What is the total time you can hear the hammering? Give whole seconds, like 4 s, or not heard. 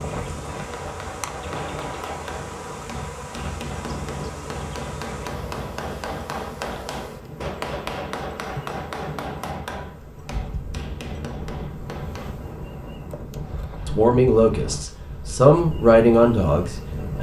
12 s.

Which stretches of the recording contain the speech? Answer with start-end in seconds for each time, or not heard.
13.8-17.1.